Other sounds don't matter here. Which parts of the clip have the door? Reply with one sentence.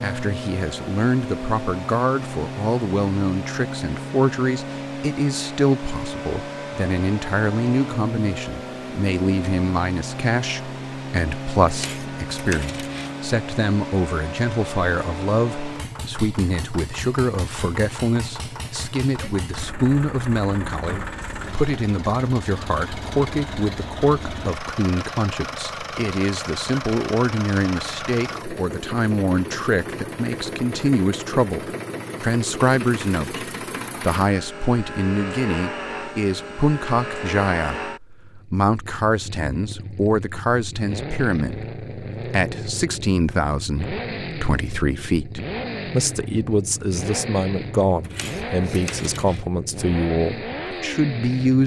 The door can't be heard in this clip.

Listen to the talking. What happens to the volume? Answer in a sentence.
The volume of the talking stays about the same.